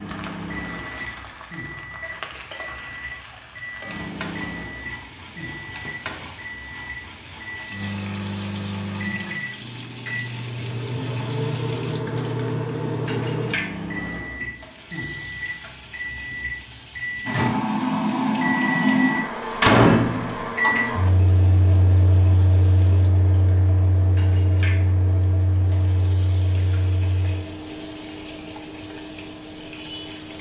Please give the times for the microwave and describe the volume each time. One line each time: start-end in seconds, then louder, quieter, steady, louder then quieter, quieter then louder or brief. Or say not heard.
0.0-30.3 louder then quieter.